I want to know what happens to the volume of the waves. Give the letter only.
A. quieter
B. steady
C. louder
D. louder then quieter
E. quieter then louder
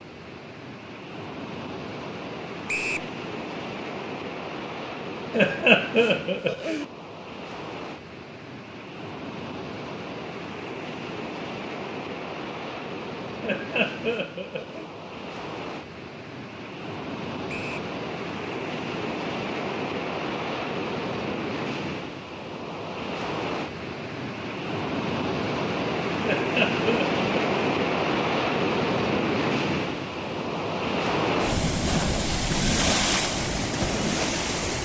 C.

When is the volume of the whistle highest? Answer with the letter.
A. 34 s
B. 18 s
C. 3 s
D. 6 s
C.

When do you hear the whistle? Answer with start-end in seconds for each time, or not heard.
2.6-3.1, 17.4-17.9.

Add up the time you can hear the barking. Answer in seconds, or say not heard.
not heard.